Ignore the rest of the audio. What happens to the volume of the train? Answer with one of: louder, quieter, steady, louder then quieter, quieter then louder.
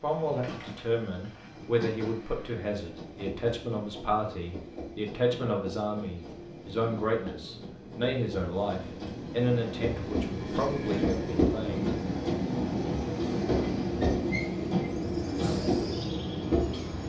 louder.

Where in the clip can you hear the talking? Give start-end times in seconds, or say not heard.
0.0-11.9.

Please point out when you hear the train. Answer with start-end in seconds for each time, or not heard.
0.0-17.0.